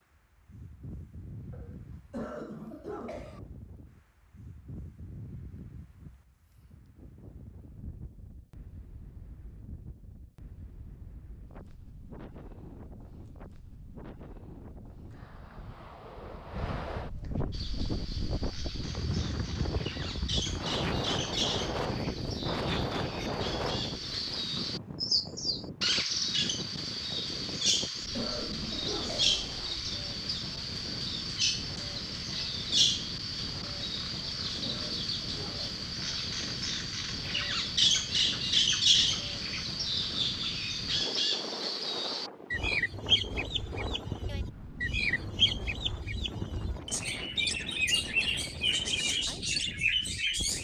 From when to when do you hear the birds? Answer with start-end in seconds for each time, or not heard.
17.5-50.6.